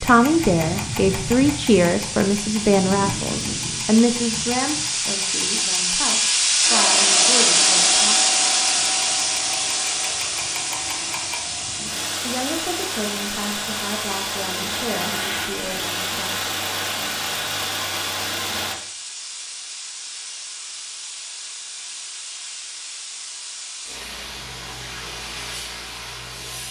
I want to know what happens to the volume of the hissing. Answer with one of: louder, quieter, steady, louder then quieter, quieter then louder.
louder then quieter.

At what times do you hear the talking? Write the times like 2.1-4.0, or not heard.
0.0-8.2, 11.8-16.4.